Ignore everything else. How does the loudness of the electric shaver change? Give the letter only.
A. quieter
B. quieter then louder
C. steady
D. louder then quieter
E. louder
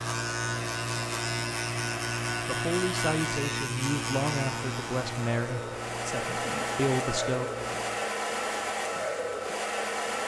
A.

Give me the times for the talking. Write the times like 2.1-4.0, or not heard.
2.4-7.5.